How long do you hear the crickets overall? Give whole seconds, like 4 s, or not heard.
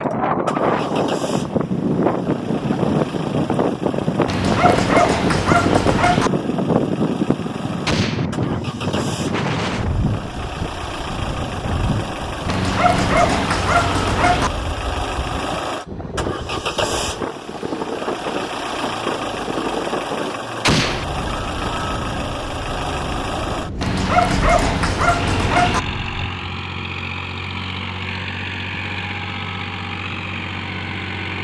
not heard.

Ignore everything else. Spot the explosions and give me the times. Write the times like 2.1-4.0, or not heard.
7.8-8.3, 20.6-21.1.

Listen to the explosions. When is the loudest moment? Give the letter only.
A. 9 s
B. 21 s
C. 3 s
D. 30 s
B.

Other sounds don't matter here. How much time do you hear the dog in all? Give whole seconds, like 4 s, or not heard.
6 s.